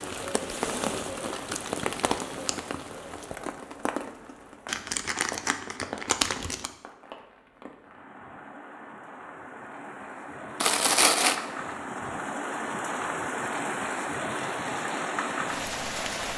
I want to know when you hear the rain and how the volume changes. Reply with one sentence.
You can hear the rain from 0.0 to 16.3 s, getting quieter then louder.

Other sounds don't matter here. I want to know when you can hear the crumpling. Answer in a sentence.
You can hear the crumpling from 4.7 to 6.7 s and from 10.6 to 11.3 s.